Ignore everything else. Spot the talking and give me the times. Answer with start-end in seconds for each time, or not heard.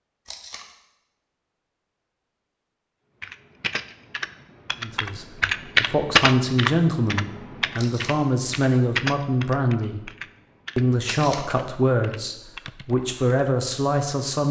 4.8-10.1, 10.8-14.4.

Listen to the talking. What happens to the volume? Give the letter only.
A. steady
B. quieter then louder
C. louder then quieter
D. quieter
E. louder
A.